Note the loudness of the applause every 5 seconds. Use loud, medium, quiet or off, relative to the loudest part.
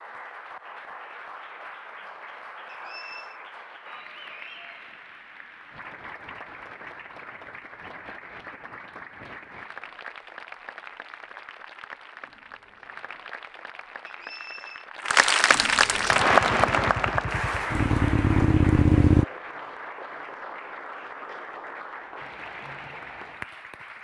quiet, quiet, quiet, loud, quiet.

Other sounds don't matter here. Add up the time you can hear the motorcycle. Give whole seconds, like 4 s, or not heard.
3 s.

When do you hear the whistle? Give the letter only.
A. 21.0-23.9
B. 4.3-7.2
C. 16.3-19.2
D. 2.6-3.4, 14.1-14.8
D.